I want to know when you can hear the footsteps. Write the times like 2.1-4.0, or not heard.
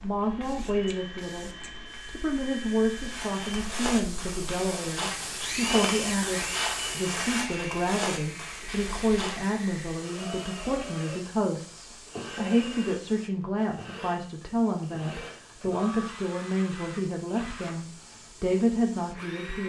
3.0-9.6.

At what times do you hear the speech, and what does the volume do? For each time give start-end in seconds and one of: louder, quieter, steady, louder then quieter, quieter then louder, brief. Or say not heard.
0.0-19.6 steady.